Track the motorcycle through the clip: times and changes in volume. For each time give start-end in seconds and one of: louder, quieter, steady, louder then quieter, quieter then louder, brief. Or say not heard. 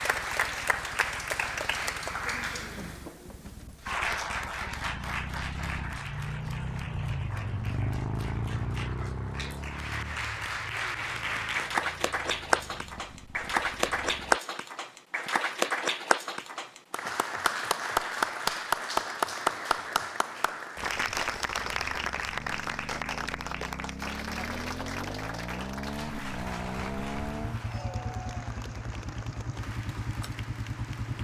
0.0-14.4 louder then quieter
20.8-31.2 louder.